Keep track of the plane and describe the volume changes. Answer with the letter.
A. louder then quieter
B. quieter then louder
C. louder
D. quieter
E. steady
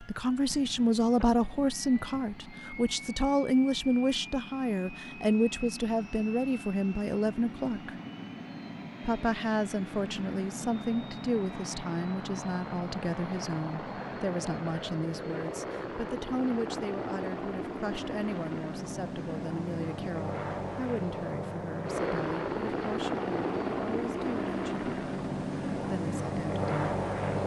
C.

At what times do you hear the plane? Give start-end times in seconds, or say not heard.
0.0-27.4.